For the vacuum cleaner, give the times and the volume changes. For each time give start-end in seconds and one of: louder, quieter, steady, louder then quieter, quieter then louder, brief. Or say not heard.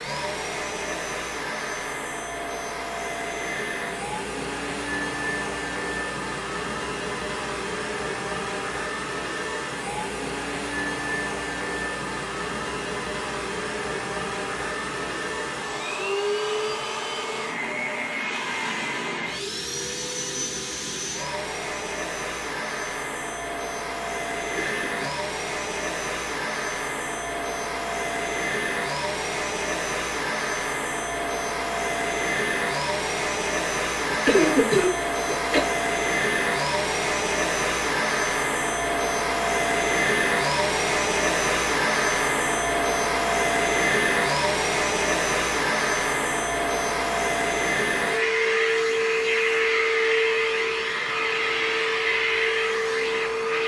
0.0-53.6 louder.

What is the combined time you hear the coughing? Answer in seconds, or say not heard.
2 s.